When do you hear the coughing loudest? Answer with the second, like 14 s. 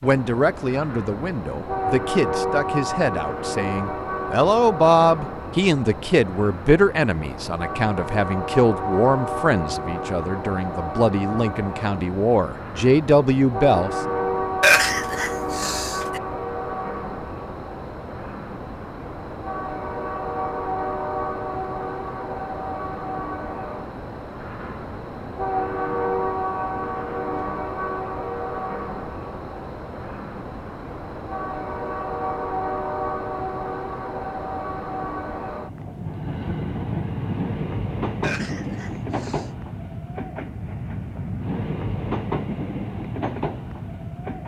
15 s.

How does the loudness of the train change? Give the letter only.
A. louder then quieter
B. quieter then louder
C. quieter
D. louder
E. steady
E.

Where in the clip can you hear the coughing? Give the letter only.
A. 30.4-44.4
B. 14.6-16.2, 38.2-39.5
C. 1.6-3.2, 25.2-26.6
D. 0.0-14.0
B.